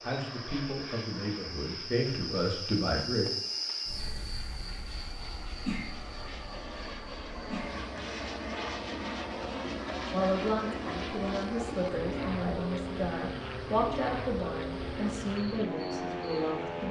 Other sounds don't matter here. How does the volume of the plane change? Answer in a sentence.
The loudness of the plane goes up.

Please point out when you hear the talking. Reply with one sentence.
The talking can be heard from 0.0 to 3.4 s and from 10.1 to 16.8 s.